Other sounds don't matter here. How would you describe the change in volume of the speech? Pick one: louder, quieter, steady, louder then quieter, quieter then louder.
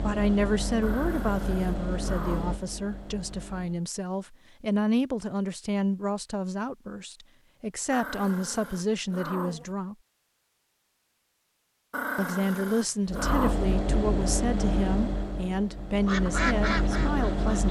steady.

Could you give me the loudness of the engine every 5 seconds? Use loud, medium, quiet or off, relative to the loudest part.
medium, off, loud, loud.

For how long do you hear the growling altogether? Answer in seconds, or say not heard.
5 s.